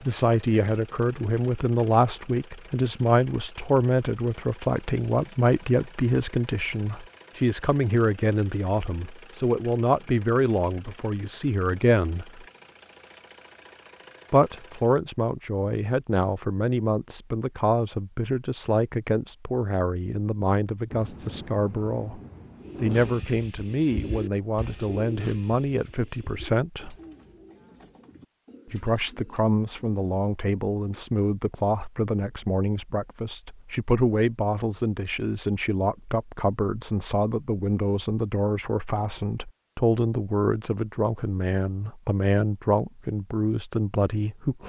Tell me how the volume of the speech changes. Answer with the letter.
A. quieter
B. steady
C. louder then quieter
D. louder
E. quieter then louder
B.